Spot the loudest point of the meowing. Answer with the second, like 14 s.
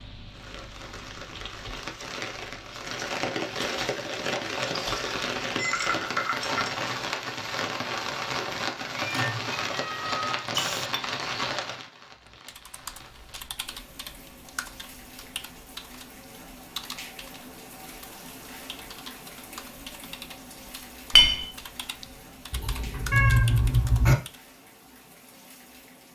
23 s.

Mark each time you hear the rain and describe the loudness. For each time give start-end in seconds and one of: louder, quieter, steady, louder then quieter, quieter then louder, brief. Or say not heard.
0.2-26.1 quieter.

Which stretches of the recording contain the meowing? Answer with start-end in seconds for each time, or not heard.
8.9-10.9, 22.5-24.1.